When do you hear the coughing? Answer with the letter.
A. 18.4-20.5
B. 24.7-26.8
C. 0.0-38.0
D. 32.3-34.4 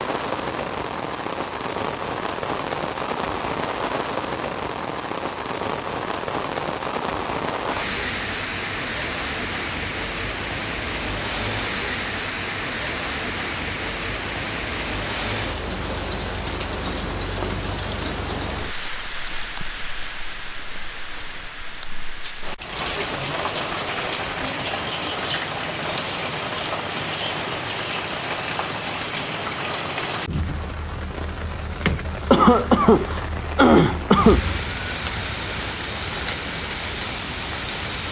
D.